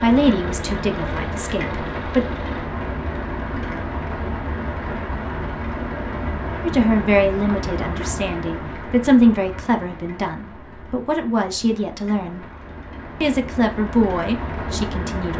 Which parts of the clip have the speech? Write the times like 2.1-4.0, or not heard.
0.0-2.2, 6.6-12.4, 13.2-15.3.